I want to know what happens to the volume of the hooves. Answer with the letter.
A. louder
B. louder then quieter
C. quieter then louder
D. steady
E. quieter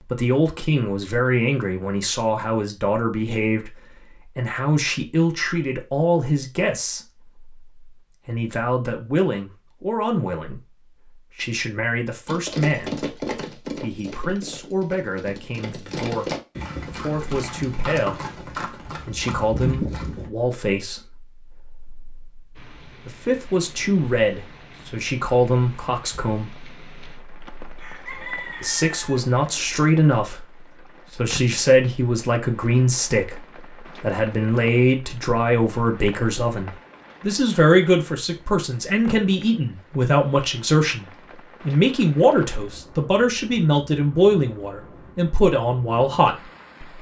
C.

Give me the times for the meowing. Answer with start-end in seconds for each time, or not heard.
not heard.